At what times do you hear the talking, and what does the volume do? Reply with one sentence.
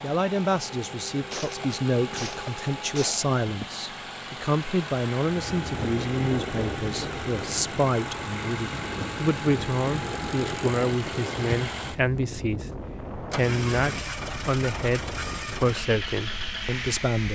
The talking can be heard from 0.0 to 17.3 s, at a steady volume.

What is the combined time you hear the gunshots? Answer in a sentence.
You can hear the gunshots for 2 seconds altogether.